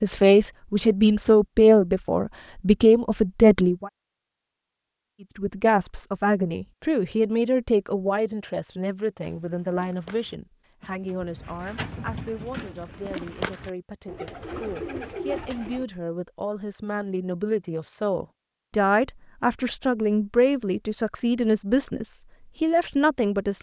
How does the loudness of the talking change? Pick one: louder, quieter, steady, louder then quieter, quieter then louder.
quieter then louder.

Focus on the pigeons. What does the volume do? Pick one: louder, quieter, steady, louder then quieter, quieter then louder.
louder.